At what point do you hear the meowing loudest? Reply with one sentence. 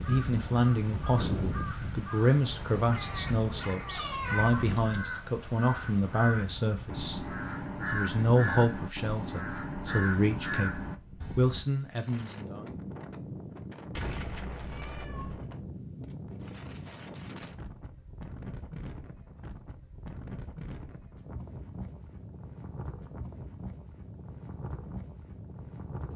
The volume of the meowing peaks at 4 seconds.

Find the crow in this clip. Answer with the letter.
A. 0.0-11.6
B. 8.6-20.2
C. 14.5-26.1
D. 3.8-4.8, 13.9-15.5
A.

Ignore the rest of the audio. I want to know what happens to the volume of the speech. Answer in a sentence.
The volume of the speech stays about the same.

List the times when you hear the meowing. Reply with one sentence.
You can hear the meowing from 3.8 to 4.8 s and from 13.9 to 15.5 s.